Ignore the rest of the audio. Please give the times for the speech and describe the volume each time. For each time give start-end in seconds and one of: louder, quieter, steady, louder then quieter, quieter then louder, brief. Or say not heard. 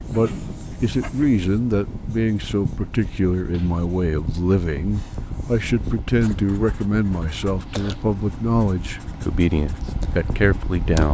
0.0-11.0 steady.